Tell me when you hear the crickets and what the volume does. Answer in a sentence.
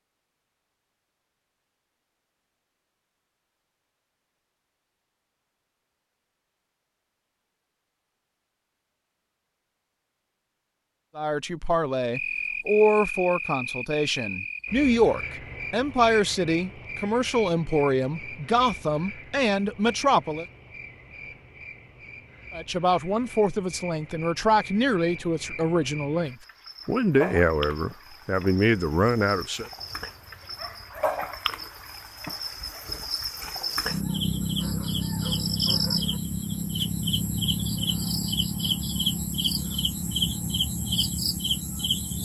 You can hear the crickets from 12.1 to 42.2 s, getting quieter then louder.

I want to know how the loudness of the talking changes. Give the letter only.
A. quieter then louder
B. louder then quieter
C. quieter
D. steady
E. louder
D.